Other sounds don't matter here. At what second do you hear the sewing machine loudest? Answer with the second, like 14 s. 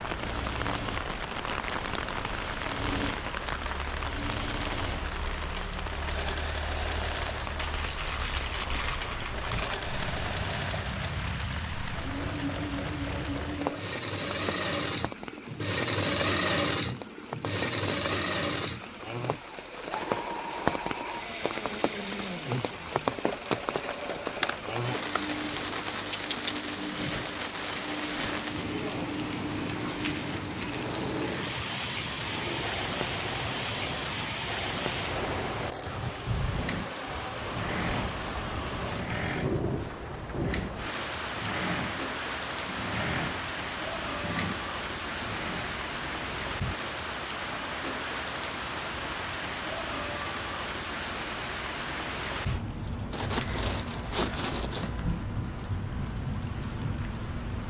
16 s.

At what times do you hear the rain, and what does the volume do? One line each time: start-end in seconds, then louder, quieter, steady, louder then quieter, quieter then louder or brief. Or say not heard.
0.0-57.6 steady.